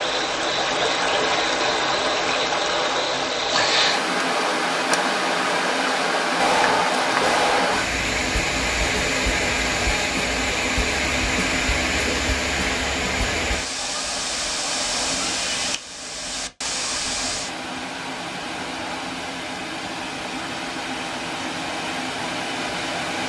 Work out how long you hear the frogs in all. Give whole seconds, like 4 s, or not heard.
not heard.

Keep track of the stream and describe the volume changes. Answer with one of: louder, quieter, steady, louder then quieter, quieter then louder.
quieter.